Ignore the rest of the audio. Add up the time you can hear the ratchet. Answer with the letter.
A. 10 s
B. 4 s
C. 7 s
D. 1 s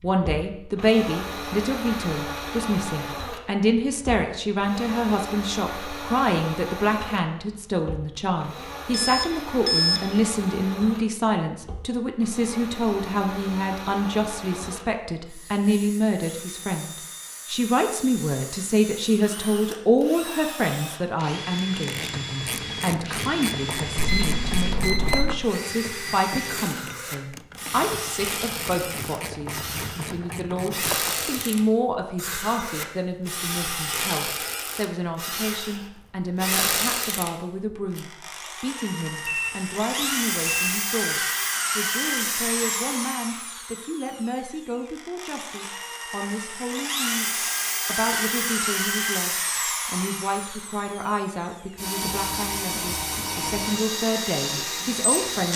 A.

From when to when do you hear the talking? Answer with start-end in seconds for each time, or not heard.
0.0-55.5.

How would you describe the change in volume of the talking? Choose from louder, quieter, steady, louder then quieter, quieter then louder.
quieter.